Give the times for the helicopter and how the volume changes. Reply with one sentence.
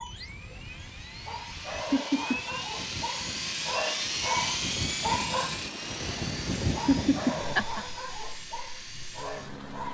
You can hear the helicopter from 0.0 to 9.9 s, getting louder then quieter.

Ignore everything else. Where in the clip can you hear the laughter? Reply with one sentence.
You can hear the laughter from 1.9 to 2.4 s and from 6.8 to 7.8 s.